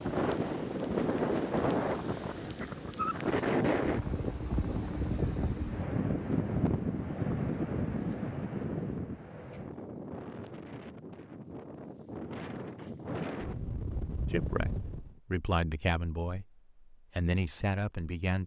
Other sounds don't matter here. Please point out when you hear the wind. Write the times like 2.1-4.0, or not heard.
0.0-15.2.